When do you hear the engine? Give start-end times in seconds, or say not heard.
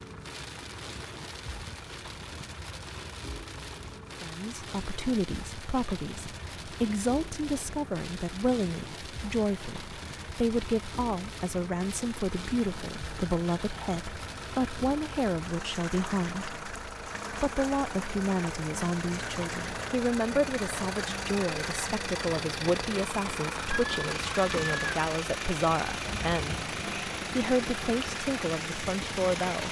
0.0-29.6.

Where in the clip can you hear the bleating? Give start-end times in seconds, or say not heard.
23.6-25.1.